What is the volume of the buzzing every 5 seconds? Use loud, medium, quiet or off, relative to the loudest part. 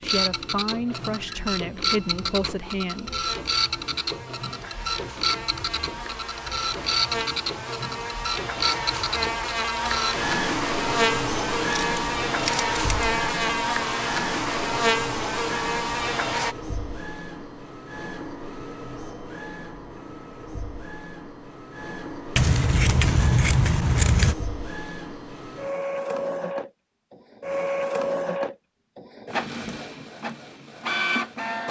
quiet, medium, loud, loud, off, off, off.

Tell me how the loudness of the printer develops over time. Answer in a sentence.
The loudness of the printer goes down, then up.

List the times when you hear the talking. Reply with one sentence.
You can hear the talking from 0.0 to 3.2 s.